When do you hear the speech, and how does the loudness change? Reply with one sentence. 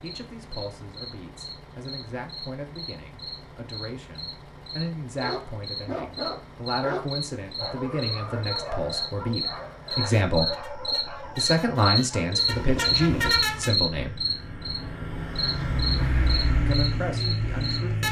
The speech can be heard from 0.0 to 14.2 s, getting louder; and briefly from 16.6 to 18.0 s.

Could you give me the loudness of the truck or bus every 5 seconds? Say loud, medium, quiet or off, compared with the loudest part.
quiet, quiet, medium, loud.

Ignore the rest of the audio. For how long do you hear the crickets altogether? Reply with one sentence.
You can hear the crickets for 18 seconds altogether.